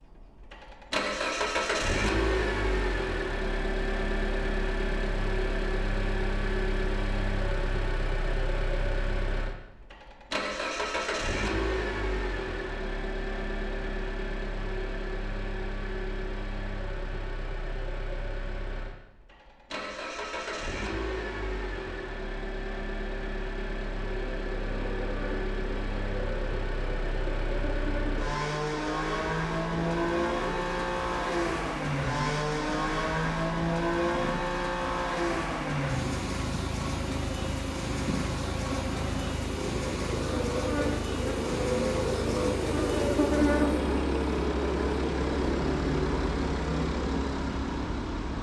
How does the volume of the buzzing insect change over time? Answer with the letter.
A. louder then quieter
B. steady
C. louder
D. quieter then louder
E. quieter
C.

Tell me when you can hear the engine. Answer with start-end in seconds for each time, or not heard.
0.0-48.3.